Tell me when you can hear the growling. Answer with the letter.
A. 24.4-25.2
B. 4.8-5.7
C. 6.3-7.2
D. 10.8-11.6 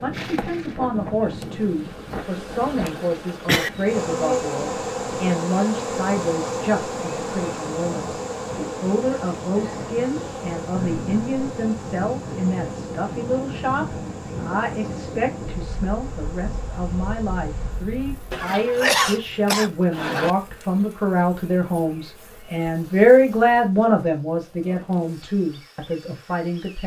D.